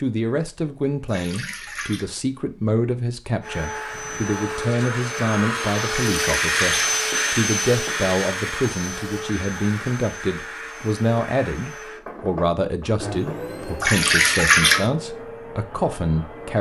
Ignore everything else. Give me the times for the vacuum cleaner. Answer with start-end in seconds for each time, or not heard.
3.4-16.5.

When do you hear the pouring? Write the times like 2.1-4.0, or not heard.
1.1-2.0, 6.0-7.0, 13.8-14.8.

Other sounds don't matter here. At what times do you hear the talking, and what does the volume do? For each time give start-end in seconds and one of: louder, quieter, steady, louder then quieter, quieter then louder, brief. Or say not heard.
0.0-16.5 steady.